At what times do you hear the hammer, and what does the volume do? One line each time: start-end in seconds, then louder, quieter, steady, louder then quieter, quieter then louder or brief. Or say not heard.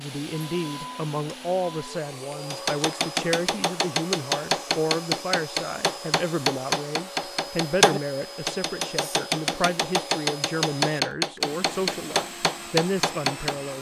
2.5-13.6 steady.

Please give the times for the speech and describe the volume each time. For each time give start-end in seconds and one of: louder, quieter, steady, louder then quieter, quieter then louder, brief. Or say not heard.
0.0-13.7 steady.